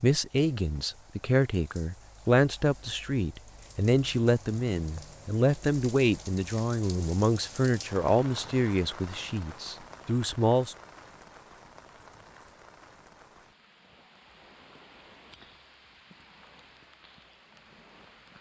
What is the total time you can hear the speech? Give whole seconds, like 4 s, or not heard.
11 s.